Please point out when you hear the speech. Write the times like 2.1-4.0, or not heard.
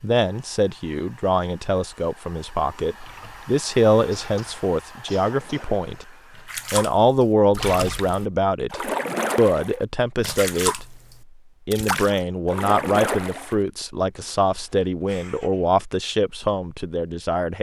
0.0-6.0, 6.7-10.8, 11.7-17.5.